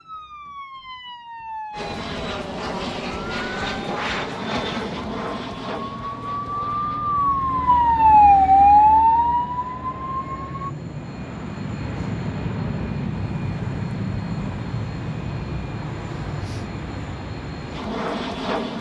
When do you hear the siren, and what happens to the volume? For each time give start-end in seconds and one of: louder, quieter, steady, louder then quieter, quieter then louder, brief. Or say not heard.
0.0-10.7 louder.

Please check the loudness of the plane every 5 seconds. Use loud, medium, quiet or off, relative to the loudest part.
loud, medium, loud, loud.